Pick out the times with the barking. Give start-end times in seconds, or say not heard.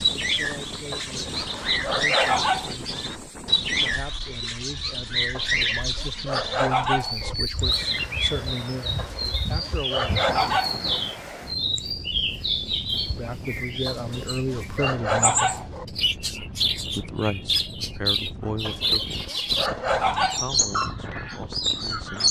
0.9-2.8, 5.3-7.3, 8.9-11.0, 13.8-15.8, 18.6-20.6.